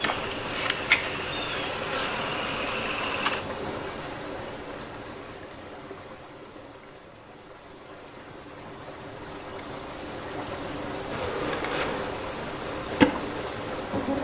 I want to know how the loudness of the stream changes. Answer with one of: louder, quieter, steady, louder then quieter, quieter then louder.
quieter then louder.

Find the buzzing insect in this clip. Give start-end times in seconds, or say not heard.
0.0-3.4, 11.1-14.2.